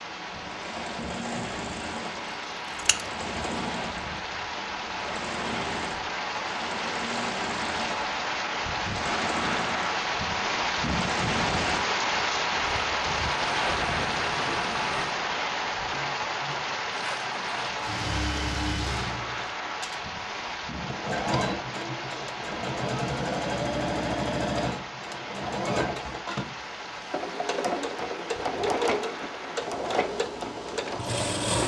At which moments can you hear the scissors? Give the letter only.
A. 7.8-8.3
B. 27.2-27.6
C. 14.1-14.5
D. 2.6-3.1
D.